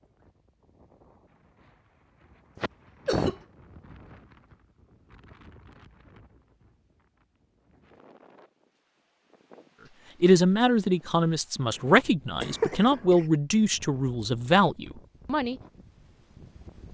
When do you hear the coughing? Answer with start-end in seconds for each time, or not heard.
2.5-3.4, 12.4-13.2.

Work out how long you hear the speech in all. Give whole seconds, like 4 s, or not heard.
5 s.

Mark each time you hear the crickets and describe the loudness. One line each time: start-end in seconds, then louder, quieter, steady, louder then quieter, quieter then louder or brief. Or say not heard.
not heard.